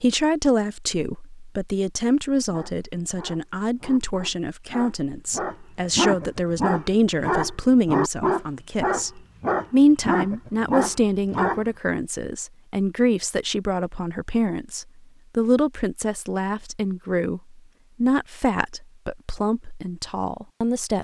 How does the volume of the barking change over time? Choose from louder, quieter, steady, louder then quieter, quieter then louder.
louder.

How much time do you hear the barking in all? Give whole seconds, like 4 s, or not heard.
9 s.